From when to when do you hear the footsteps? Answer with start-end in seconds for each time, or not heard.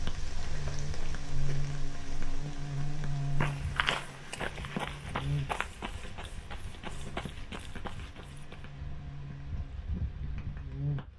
3.4-8.7.